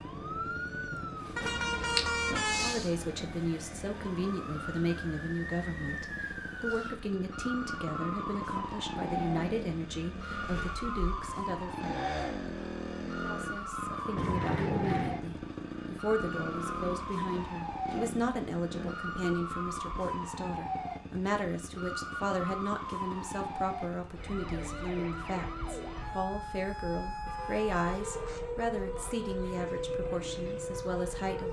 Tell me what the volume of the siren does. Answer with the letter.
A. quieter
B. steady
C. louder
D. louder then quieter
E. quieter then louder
B.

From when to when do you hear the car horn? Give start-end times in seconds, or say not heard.
1.4-2.8, 14.2-15.2, 27.2-28.4.